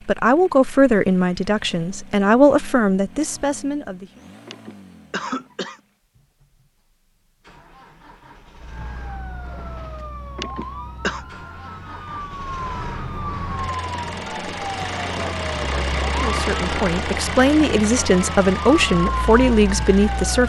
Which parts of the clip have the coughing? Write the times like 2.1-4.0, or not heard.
4.5-5.8, 10.3-11.2.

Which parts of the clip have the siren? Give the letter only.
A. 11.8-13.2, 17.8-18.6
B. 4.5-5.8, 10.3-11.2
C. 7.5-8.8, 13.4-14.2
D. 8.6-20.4
D.